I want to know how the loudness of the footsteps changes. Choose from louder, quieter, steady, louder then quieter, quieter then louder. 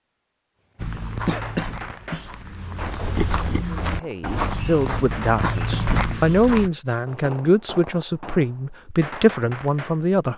louder.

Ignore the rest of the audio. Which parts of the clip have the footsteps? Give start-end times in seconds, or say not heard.
0.8-6.7.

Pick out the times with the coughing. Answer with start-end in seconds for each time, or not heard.
1.2-2.3, 5.4-6.5.